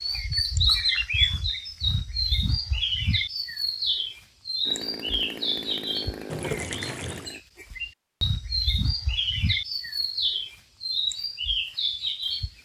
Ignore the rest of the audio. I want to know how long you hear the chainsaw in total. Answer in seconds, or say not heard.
3 s.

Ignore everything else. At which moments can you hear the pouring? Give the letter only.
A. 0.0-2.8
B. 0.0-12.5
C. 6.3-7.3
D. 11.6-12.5
C.